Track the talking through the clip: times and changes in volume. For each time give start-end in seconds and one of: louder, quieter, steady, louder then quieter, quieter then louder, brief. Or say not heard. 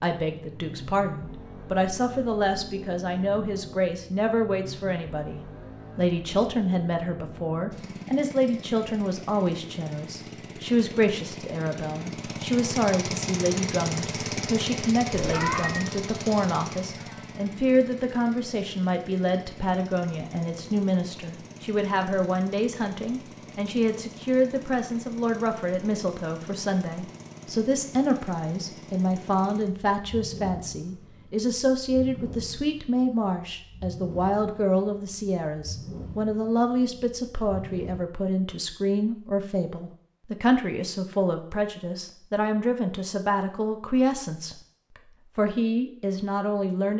0.0-46.9 steady.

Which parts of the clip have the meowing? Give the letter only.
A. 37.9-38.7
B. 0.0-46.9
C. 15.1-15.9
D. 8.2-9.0
C.